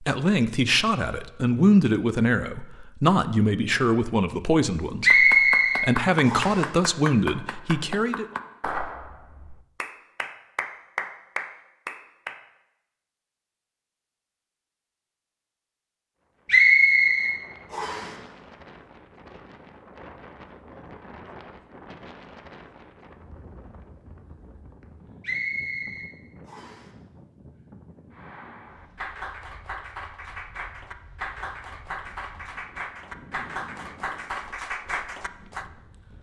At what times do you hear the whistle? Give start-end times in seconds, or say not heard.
5.0-6.6, 16.4-18.1, 25.2-26.9.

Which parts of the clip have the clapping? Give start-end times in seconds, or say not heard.
5.0-12.4, 28.1-35.6.